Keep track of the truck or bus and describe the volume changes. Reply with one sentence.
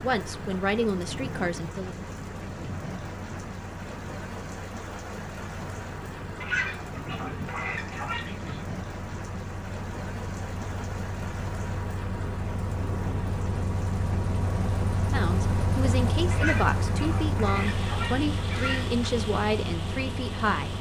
The loudness of the truck or bus goes up.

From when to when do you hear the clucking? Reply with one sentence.
The clucking can be heard from 6.4 to 8.7 s and from 16.3 to 19.1 s.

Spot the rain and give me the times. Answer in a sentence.
You can hear the rain from 0.0 to 20.7 s.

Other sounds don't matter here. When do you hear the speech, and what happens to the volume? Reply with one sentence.
You can hear the speech briefly from 0.0 to 1.9 s; and from 15.1 to 20.7 s, at a steady volume.